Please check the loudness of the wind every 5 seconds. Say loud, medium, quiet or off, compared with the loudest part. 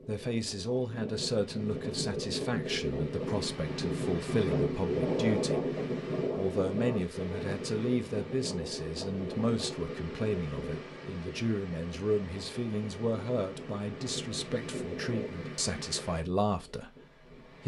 loud, loud, medium, medium.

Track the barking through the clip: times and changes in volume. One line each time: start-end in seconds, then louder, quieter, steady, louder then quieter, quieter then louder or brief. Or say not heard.
not heard.